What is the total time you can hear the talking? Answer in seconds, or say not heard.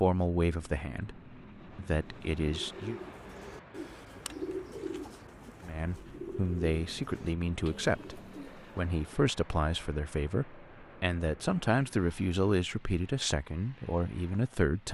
12 s.